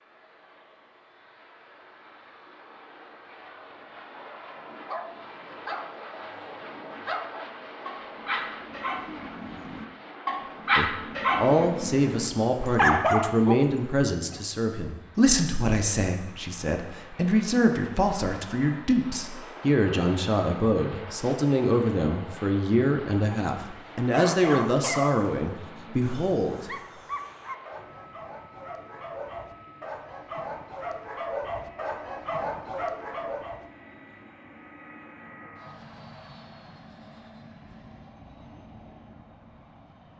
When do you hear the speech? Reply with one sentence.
The speech can be heard from 10.8 to 26.6 s.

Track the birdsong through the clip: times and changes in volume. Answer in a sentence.
The birdsong can't be heard in this clip.